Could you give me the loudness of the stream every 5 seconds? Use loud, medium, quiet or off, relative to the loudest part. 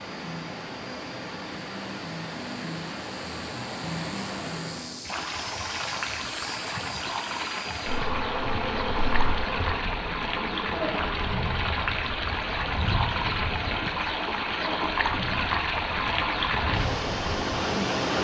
medium, medium, loud, loud.